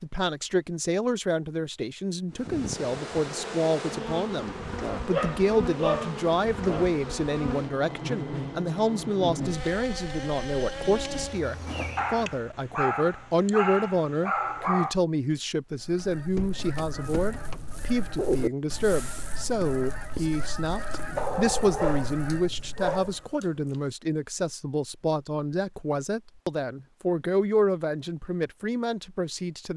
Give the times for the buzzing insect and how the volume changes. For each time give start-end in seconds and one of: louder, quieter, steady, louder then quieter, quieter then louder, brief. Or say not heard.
2.3-12.3 steady.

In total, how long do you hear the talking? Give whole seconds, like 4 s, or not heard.
30 s.